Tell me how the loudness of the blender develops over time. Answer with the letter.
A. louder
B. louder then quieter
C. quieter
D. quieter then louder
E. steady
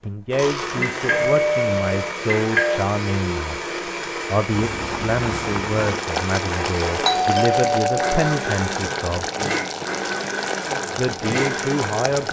E.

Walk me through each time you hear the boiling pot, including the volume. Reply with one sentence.
The boiling pot can be heard from 4.5 to 12.2 s, at a steady volume.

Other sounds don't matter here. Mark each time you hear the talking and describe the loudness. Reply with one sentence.
You can hear the talking from 0.0 to 9.2 s, at a steady volume; and briefly from 10.9 to 12.2 s.